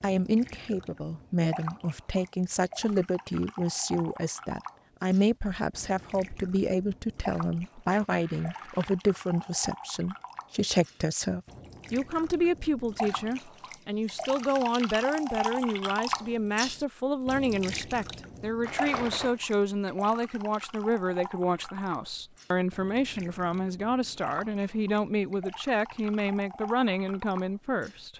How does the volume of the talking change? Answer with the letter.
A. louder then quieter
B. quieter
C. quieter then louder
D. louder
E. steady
E.